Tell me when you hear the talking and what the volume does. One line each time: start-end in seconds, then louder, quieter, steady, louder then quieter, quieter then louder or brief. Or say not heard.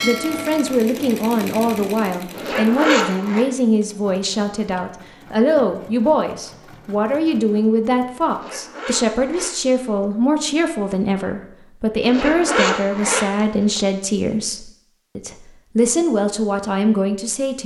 0.0-17.6 steady.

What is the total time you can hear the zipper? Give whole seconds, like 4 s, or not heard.
5 s.